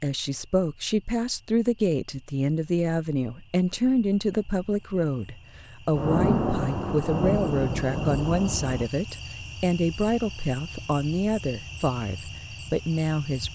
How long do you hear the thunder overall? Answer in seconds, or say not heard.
3 s.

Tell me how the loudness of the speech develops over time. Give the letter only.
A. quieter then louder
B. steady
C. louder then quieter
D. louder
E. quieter
B.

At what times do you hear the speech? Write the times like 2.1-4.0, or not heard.
0.0-13.4.